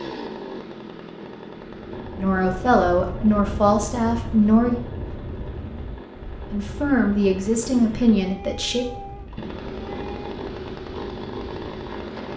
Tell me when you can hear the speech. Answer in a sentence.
You can hear the speech from 2.1 to 4.8 s and from 6.5 to 8.8 s.